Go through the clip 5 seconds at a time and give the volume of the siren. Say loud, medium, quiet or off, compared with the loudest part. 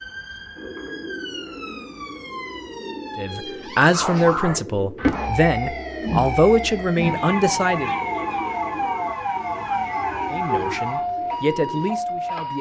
medium, loud, loud.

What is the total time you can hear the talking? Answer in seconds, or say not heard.
7 s.